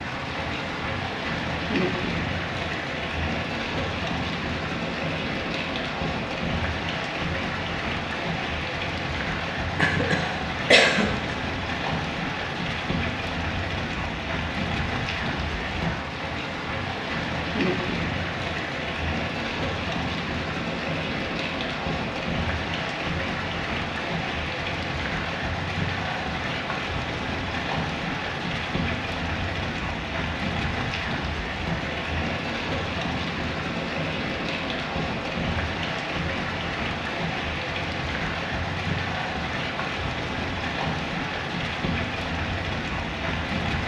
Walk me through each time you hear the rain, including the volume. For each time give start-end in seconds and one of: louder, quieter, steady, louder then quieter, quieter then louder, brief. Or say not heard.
0.0-43.8 steady.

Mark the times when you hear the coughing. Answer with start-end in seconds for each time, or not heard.
9.8-11.3.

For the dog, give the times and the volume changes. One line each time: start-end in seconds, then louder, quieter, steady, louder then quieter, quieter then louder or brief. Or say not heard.
not heard.